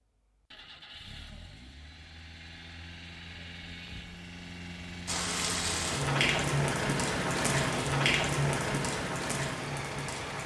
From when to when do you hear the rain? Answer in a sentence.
The rain can be heard from 5.0 to 10.4 s.